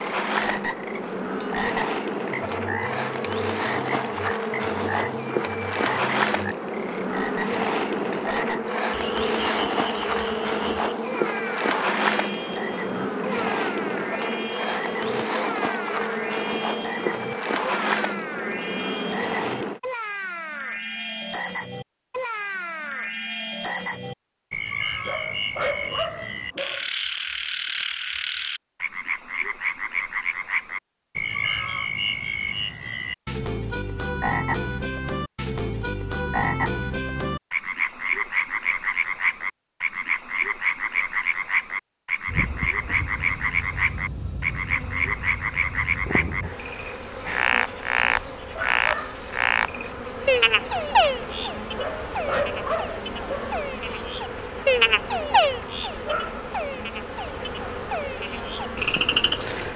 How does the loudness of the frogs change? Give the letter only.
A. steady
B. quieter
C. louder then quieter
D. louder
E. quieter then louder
D.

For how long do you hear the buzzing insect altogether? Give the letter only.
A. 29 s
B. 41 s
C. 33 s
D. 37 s
D.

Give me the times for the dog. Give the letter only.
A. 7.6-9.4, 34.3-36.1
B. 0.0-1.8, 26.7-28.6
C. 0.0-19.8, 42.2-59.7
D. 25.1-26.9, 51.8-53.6
D.